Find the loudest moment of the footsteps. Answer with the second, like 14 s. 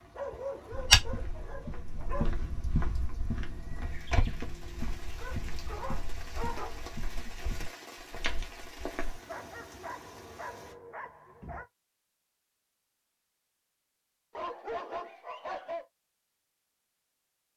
1 s.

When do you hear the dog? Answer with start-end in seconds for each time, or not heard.
0.1-2.4, 5.2-6.8, 9.2-11.7, 14.3-15.8.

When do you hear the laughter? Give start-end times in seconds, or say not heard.
not heard.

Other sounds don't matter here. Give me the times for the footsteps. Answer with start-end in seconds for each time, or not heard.
0.7-9.2.